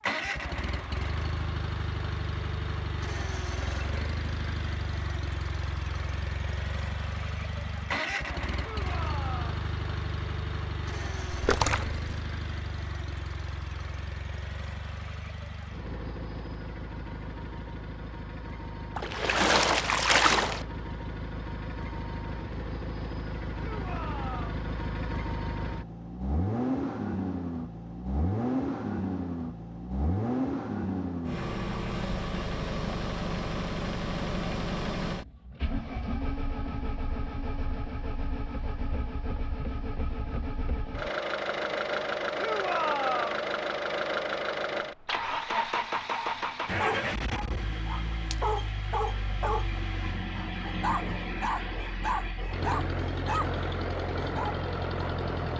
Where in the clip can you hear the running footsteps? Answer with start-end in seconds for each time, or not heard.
not heard.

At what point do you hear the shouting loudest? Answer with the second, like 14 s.
43 s.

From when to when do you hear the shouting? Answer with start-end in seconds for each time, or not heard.
8.6-9.7, 23.6-24.6, 42.4-43.5.